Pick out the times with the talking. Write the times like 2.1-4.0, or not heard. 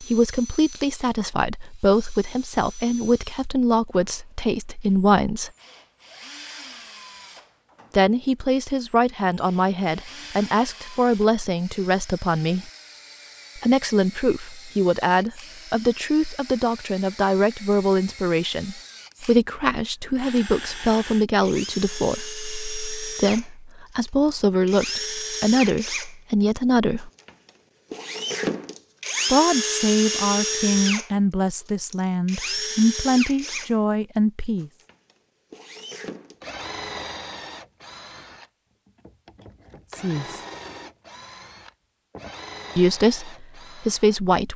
0.0-5.5, 7.9-12.7, 13.6-27.1, 29.3-34.7, 40.0-40.4, 42.8-44.5.